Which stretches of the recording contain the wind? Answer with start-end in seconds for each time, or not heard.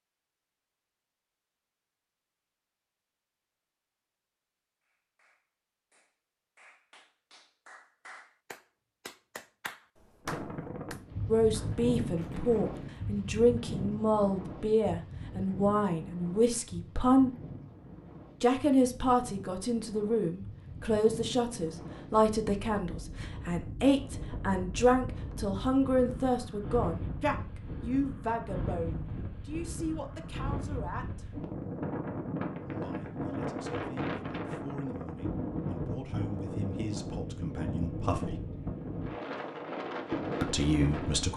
10.2-41.3.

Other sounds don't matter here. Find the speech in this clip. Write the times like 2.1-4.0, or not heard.
11.2-17.4, 18.4-31.4, 32.8-38.5, 40.4-41.3.